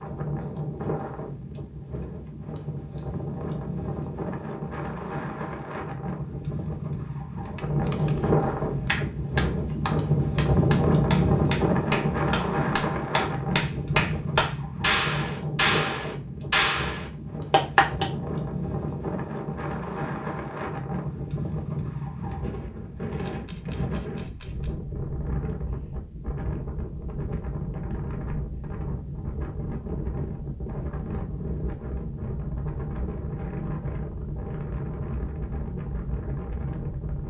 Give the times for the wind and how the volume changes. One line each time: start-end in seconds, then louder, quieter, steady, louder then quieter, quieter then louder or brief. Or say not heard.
0.0-37.2 louder then quieter.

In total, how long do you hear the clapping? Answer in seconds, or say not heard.
9 s.